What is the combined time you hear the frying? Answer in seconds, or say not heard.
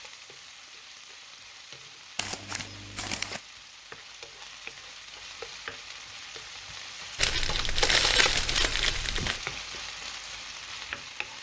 11 s.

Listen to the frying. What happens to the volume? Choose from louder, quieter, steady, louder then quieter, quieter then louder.
louder.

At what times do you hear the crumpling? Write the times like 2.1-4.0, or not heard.
2.1-3.4, 7.2-9.4.